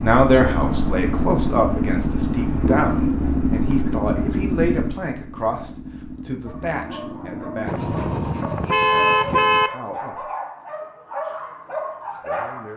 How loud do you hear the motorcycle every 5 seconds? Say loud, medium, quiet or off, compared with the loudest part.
loud, quiet, off.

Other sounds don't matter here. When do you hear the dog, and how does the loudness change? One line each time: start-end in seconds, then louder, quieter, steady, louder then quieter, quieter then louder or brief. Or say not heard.
6.5-12.7 louder.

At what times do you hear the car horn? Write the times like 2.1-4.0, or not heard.
7.7-9.7.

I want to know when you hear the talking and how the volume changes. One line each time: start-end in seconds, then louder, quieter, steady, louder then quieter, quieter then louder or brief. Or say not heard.
0.0-10.2 quieter
12.2-12.7 brief.